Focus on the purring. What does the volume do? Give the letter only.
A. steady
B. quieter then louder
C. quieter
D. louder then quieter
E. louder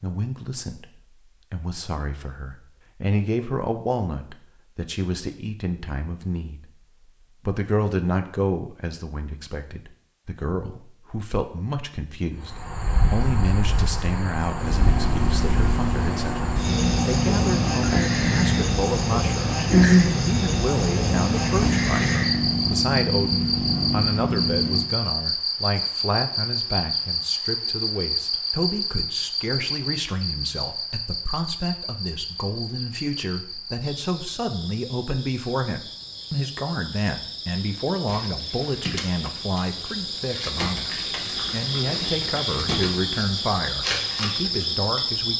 D.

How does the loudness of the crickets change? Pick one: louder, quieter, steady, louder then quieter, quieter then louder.
quieter then louder.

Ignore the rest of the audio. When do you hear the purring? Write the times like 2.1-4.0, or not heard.
14.6-24.9.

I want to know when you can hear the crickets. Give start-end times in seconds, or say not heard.
12.3-45.3.